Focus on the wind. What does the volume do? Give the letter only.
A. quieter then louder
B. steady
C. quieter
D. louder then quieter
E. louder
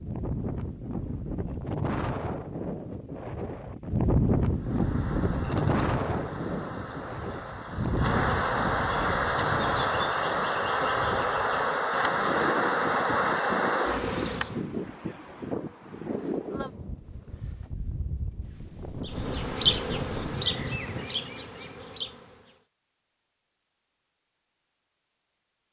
C.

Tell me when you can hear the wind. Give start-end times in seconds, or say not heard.
0.0-21.1.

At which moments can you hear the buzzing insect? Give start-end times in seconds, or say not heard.
4.6-14.6, 19.1-22.6.